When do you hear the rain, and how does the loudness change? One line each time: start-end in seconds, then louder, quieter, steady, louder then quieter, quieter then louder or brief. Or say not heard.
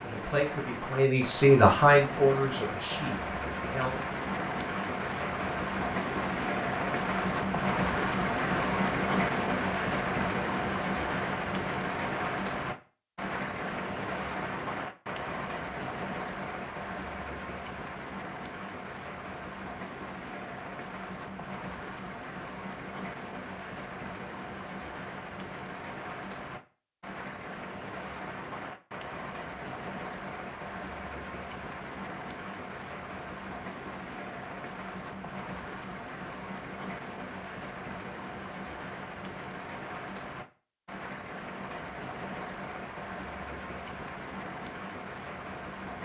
0.0-46.0 quieter.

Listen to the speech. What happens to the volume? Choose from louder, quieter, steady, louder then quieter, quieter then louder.
louder then quieter.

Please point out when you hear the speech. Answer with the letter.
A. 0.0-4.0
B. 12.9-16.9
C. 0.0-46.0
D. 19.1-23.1
A.